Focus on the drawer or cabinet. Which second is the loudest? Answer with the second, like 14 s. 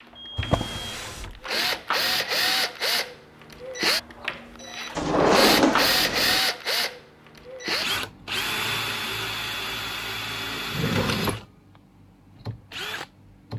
5 s.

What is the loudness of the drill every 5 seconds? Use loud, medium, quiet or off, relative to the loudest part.
loud, loud, medium.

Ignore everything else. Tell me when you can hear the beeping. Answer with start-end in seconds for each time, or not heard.
0.1-1.0.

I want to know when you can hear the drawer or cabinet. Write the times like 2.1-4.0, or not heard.
0.3-1.4, 5.0-6.4, 10.7-11.4.